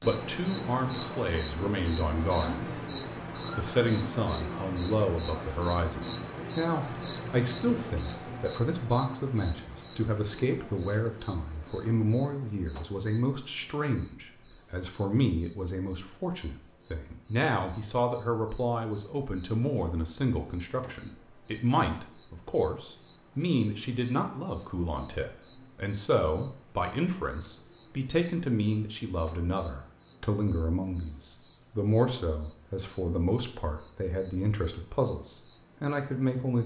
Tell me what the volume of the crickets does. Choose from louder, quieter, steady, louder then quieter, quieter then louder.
quieter.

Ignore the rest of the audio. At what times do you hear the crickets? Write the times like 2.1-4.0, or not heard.
0.0-36.6.